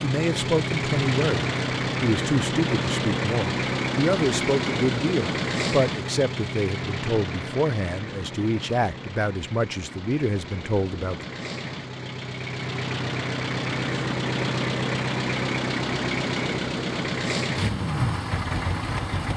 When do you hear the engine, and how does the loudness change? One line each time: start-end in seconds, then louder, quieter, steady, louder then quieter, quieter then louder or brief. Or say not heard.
0.0-19.3 quieter then louder.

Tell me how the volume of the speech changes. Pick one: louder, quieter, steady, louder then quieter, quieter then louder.
steady.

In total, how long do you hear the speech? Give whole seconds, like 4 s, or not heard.
11 s.